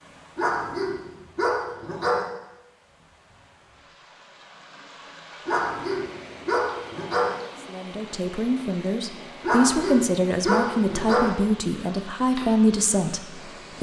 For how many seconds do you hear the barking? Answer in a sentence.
You can hear the barking for 6 seconds altogether.